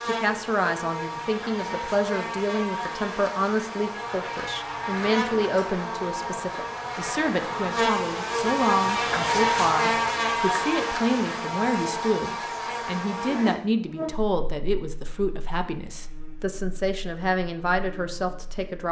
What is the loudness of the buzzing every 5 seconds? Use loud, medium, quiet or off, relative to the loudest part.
medium, loud, loud, quiet.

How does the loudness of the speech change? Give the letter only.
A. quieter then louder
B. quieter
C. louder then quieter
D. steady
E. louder
D.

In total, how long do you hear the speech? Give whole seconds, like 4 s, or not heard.
19 s.